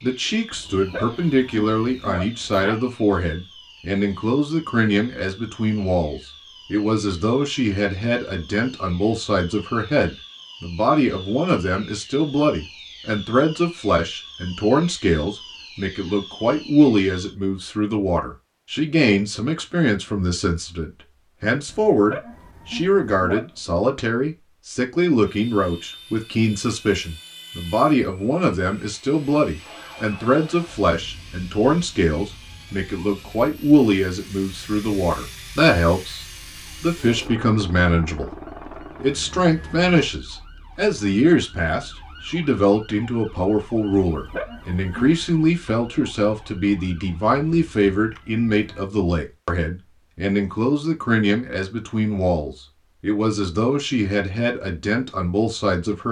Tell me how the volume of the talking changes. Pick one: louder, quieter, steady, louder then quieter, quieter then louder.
steady.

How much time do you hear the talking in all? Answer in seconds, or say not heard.
56 s.